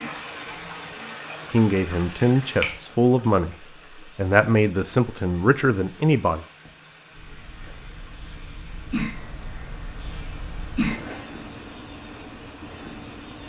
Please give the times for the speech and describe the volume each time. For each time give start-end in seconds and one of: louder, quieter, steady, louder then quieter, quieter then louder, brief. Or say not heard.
1.5-6.5 steady.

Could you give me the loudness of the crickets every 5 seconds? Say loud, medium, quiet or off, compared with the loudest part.
medium, medium, loud.